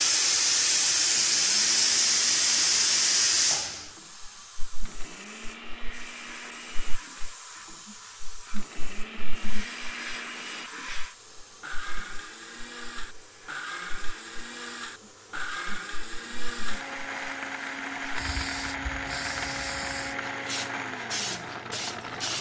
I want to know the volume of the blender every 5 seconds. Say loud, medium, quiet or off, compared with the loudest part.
medium, medium, medium, loud, loud.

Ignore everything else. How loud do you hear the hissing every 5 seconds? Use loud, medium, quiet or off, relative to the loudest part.
loud, quiet, quiet, quiet, quiet.